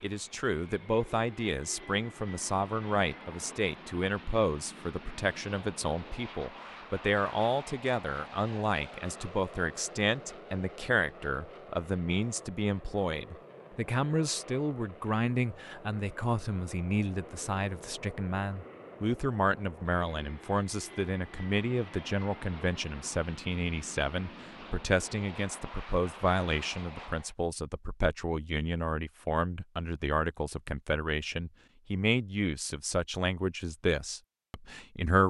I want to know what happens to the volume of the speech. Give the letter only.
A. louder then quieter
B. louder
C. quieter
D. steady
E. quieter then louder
D.